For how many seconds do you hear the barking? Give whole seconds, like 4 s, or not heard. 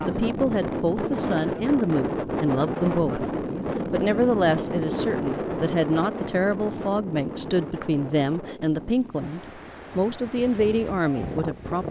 not heard.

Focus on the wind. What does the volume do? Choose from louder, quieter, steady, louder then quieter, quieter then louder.
quieter.